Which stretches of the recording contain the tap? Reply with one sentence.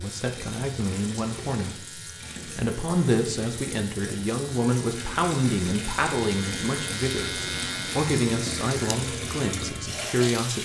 The tap can be heard from 0.0 to 10.6 s.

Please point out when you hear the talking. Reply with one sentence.
You can hear the talking from 0.0 to 10.6 s.